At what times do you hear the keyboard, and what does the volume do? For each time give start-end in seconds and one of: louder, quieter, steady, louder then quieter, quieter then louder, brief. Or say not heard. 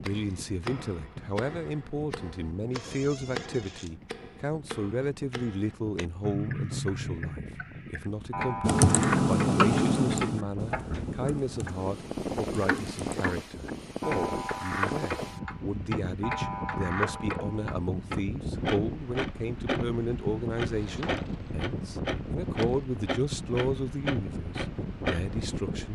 8.6-13.1 quieter.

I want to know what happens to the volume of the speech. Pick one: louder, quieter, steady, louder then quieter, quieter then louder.
steady.